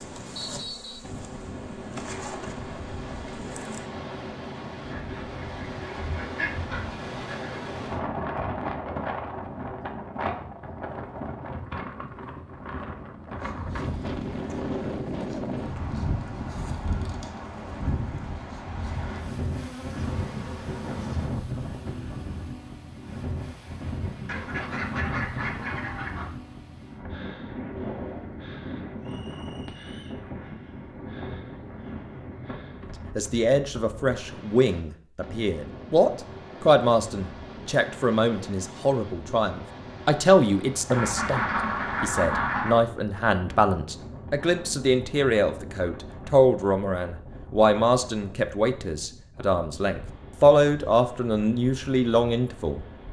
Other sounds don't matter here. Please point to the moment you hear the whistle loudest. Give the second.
1 s.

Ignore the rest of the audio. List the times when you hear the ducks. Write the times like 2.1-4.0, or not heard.
4.8-7.6, 24.2-26.3, 40.9-42.8.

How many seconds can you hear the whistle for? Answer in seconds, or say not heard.
2 s.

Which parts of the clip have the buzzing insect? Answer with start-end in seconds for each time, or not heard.
0.0-3.9, 13.3-21.3.